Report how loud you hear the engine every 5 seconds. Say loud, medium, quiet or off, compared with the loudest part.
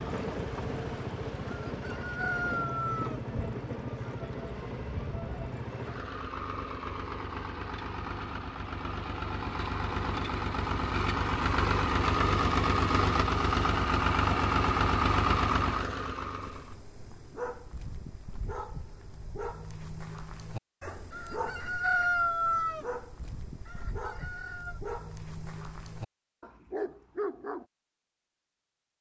medium, medium, loud, loud, off, off.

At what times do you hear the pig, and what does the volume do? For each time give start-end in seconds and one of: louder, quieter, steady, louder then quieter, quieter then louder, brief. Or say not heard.
not heard.